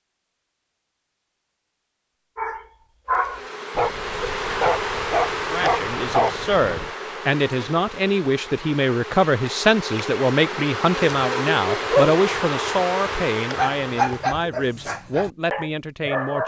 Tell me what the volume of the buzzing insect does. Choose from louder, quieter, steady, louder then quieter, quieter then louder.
quieter then louder.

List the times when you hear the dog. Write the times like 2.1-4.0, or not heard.
2.4-6.8, 11.1-16.4.